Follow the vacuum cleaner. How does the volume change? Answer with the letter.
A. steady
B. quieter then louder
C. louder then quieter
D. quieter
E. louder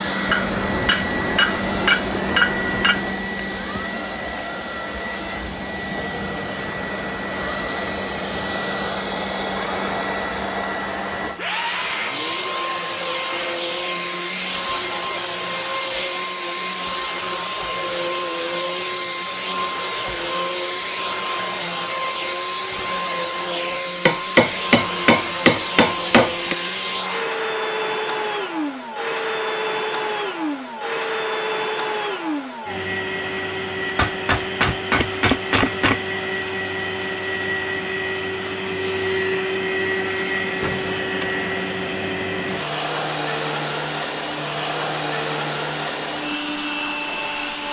A.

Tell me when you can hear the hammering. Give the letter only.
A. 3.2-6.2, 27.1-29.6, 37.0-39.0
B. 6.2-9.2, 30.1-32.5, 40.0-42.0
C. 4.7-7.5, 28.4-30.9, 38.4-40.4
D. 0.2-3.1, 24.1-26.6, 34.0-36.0
D.